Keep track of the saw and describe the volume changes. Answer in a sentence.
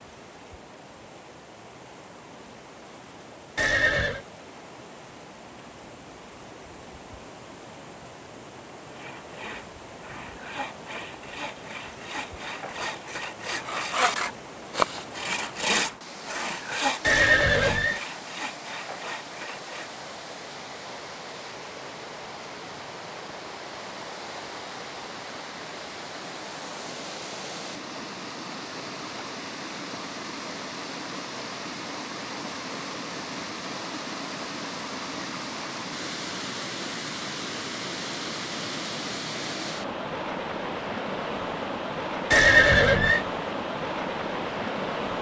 The volume of the saw goes up, then down.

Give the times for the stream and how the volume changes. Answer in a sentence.
The stream can be heard from 0.0 to 45.1 s, getting louder.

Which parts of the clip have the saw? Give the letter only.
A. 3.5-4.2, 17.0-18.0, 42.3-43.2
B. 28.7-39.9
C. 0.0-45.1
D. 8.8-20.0
D.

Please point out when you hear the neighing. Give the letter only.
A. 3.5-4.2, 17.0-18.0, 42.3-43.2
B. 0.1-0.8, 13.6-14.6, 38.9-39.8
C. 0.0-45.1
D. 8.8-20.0
A.